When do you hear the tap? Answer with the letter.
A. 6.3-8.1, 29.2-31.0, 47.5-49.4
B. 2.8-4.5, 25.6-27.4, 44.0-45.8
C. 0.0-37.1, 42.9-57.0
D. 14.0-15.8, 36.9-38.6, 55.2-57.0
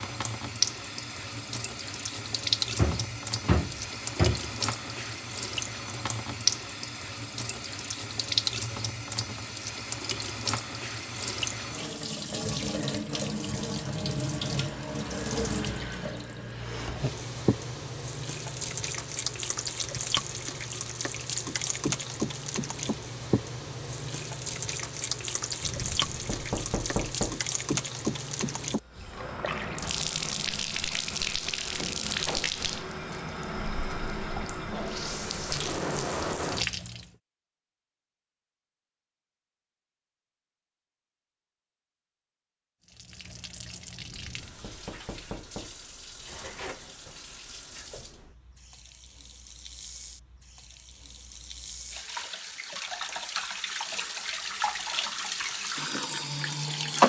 C.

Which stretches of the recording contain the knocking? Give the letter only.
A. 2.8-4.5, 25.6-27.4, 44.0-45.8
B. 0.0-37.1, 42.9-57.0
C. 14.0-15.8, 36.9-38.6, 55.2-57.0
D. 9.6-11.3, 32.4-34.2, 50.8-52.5
A.